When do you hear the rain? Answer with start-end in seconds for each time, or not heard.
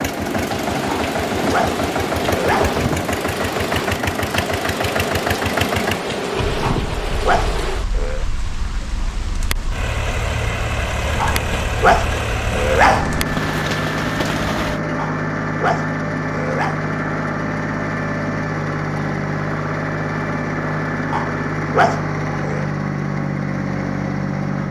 0.0-14.8.